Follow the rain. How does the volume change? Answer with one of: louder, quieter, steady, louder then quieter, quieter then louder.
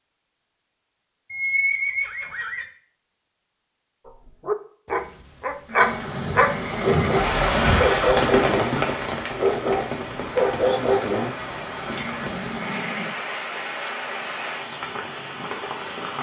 quieter.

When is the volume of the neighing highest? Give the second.
2 s.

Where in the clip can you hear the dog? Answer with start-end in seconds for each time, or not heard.
4.0-11.3.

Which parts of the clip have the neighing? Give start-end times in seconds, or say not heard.
1.3-2.6, 5.7-7.5, 11.8-13.2.